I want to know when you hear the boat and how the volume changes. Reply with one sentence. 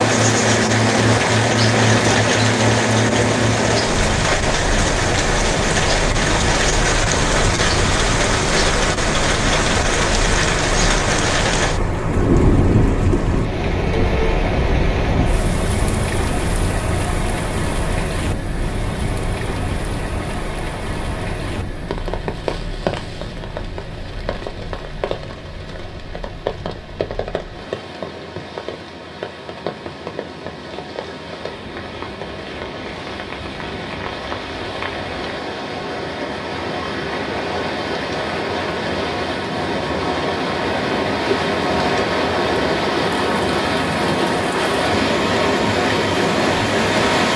The boat can be heard from 0.0 to 47.3 s, getting quieter then louder.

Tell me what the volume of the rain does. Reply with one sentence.
The loudness of the rain goes down, then up.